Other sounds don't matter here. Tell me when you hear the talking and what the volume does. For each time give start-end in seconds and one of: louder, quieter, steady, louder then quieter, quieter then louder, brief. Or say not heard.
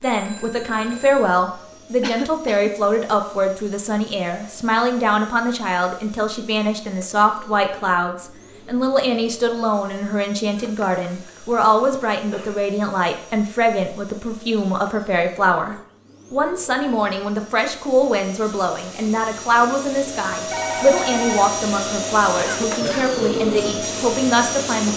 0.0-24.9 steady.